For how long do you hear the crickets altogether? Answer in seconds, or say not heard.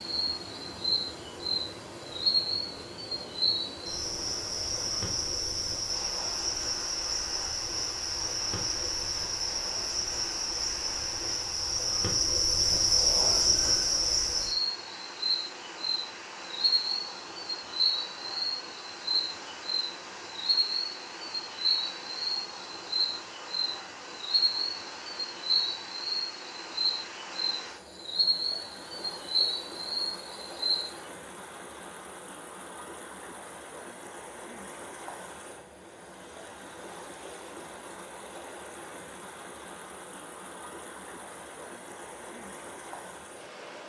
31 s.